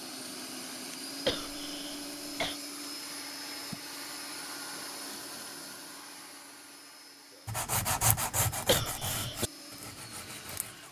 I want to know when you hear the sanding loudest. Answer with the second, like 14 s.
8 s.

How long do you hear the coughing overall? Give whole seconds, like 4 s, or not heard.
2 s.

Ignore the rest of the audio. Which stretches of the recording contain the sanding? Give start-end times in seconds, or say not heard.
7.5-10.8.